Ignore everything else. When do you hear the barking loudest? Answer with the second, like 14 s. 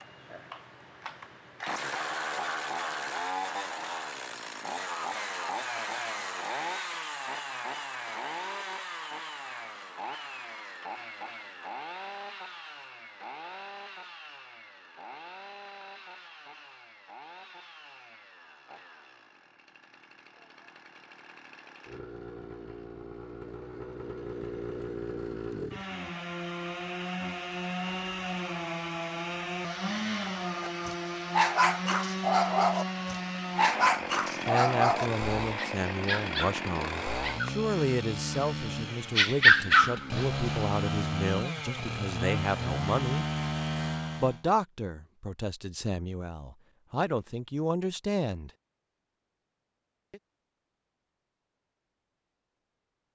40 s.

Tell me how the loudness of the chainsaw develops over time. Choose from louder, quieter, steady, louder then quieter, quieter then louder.
quieter then louder.